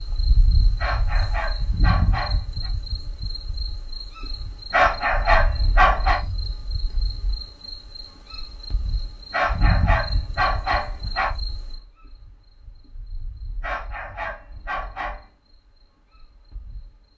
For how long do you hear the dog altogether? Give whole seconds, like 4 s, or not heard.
7 s.